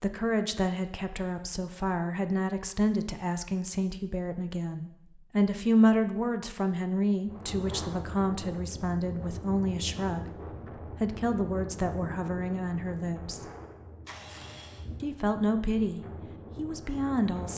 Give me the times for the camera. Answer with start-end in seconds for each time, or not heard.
14.1-14.8.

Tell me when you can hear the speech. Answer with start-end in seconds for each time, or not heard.
0.0-10.3, 11.0-13.4, 15.0-17.5.